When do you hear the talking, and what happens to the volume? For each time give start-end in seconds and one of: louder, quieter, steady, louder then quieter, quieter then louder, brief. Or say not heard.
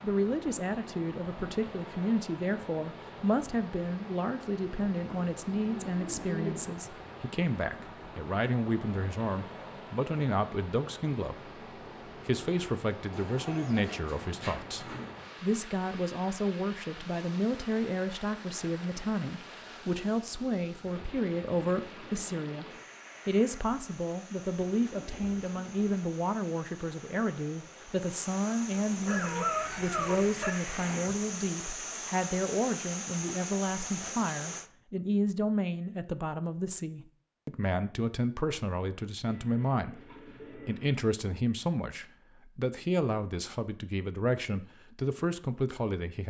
0.0-22.6 steady
23.2-46.2 steady.